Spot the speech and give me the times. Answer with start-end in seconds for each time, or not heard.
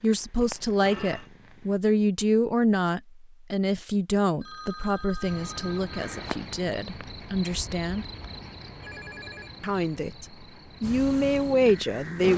0.0-8.1, 9.6-12.3.